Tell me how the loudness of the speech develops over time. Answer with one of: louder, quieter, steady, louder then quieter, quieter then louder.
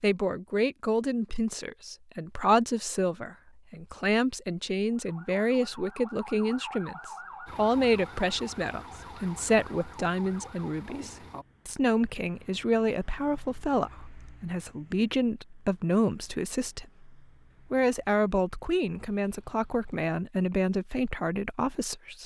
steady.